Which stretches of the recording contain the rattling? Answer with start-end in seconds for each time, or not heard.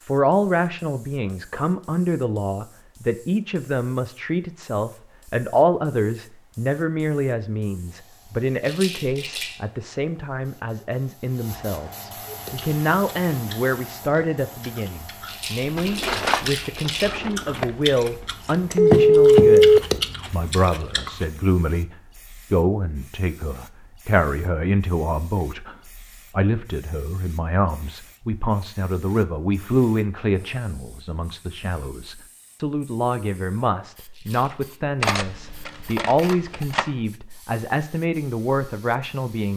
8.6-9.6, 15.2-17.1, 34.1-34.8.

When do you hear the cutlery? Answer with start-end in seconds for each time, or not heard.
15.7-17.6, 35.0-36.9.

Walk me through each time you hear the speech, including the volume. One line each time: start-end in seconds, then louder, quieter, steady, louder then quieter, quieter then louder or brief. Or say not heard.
0.1-39.5 steady.